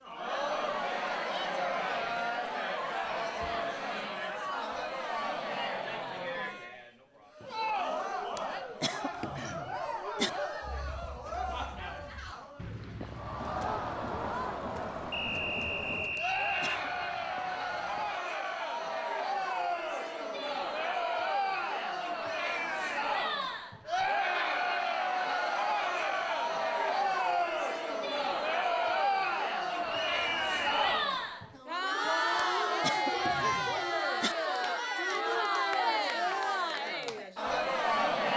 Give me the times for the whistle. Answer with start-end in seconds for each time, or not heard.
15.1-16.8, 29.9-31.1.